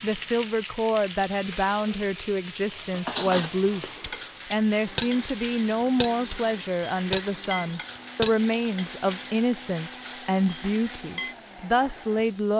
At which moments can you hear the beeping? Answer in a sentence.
The beeping can't be heard in this clip.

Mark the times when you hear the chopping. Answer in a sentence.
The chopping can't be heard in this clip.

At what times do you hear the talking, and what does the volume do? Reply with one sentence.
The talking can be heard from 0.0 to 12.5 s, at a steady volume.